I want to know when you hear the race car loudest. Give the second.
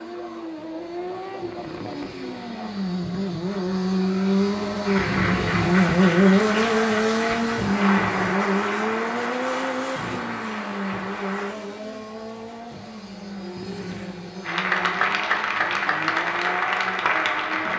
6 s.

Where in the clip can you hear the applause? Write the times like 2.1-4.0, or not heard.
4.8-11.6, 14.4-17.7.